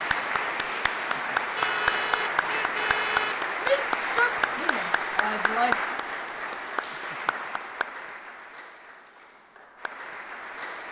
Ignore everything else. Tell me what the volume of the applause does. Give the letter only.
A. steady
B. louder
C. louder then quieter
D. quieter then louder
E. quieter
E.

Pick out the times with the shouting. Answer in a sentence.
You can hear the shouting from 3.6 to 5.9 s.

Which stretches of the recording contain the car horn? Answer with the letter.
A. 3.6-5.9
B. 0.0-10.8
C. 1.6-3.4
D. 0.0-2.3
C.